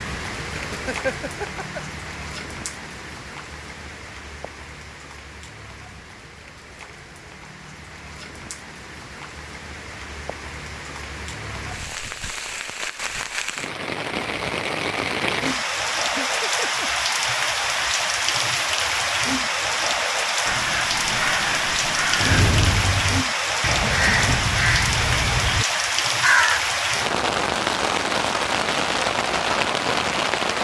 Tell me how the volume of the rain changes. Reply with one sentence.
The volume of the rain goes up.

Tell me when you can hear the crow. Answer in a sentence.
The crow can be heard from 20.4 to 26.6 s.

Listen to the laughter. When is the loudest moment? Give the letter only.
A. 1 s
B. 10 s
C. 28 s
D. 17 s
A.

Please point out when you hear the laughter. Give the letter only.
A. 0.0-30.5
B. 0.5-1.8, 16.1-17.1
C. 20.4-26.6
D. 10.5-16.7
B.